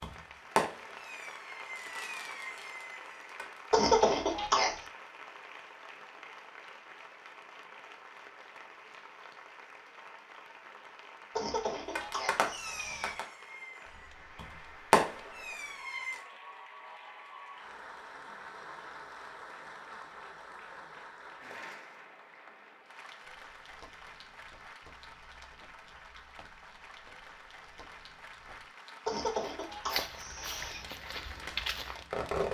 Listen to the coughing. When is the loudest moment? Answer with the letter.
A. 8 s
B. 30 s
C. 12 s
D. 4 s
D.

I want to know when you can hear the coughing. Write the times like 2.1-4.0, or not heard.
3.7-4.8, 11.3-13.2, 29.1-30.9.